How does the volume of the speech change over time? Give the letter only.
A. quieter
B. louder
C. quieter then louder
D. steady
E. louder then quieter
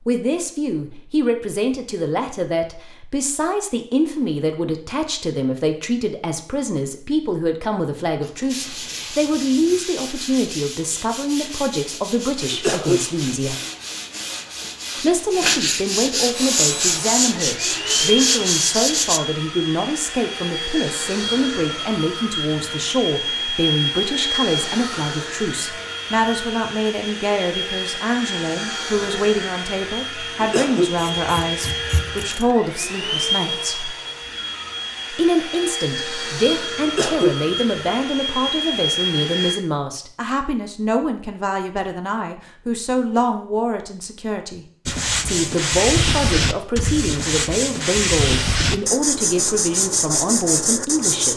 D.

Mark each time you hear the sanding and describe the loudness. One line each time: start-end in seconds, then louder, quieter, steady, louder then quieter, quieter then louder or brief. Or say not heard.
8.4-19.2 louder
44.9-51.3 steady.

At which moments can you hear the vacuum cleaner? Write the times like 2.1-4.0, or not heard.
16.3-39.5.